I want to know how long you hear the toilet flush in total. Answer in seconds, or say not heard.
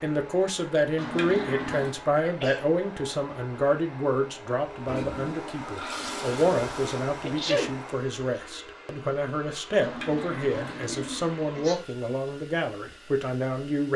5 s.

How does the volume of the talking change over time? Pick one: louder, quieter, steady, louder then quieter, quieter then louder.
steady.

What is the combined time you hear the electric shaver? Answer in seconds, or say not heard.
not heard.